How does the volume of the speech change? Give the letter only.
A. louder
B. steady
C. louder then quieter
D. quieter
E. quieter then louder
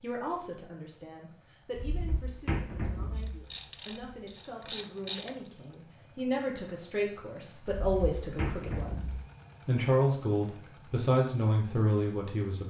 A.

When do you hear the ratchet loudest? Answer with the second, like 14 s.
5 s.